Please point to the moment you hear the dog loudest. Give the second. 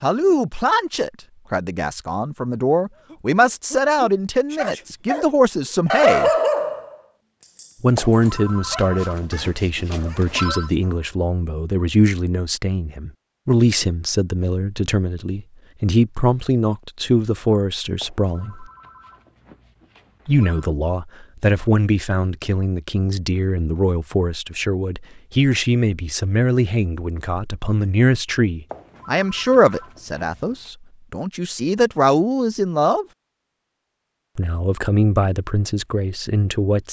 6 s.